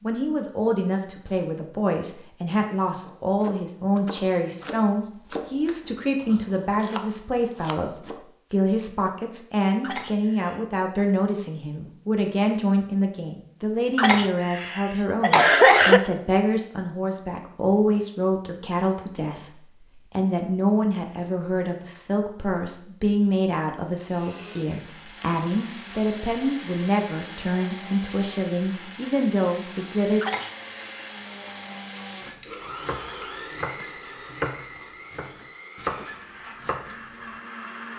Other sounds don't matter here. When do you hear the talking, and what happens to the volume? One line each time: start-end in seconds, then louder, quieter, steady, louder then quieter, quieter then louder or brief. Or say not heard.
0.0-30.2 steady.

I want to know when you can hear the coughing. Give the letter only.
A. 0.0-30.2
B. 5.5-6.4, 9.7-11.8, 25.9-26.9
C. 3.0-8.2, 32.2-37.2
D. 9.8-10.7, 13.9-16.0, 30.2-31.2
D.